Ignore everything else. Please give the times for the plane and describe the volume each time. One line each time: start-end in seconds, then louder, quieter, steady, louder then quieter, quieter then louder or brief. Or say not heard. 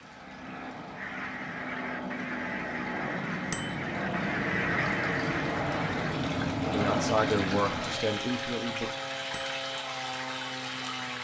0.0-11.1 louder then quieter.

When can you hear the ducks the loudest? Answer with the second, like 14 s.
5 s.